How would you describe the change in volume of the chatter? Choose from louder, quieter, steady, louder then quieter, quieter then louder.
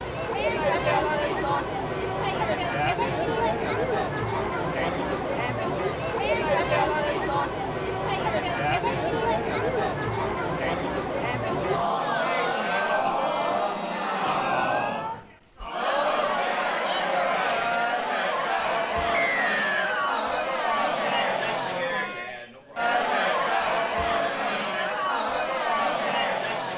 steady.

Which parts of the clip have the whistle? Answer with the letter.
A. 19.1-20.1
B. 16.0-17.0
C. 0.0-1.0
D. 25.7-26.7
A.